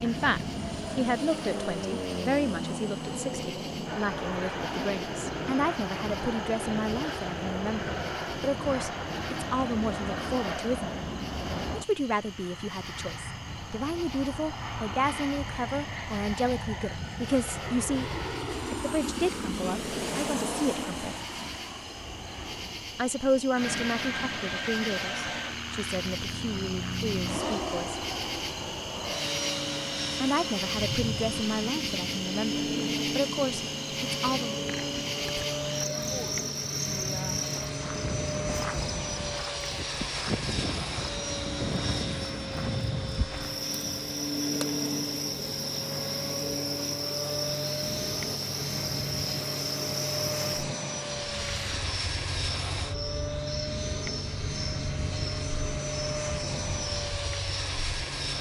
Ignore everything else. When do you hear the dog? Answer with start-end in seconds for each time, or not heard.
not heard.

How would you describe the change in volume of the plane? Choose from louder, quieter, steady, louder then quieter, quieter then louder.
steady.